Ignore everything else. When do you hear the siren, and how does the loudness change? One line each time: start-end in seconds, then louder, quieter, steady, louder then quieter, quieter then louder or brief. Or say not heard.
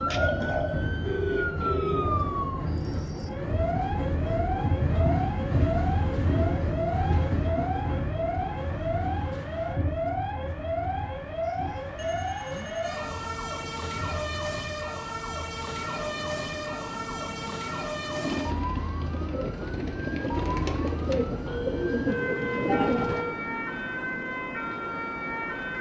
0.0-25.7 steady.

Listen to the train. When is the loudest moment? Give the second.
5 s.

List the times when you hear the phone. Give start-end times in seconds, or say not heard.
1.0-2.0, 11.4-12.9, 21.4-23.4.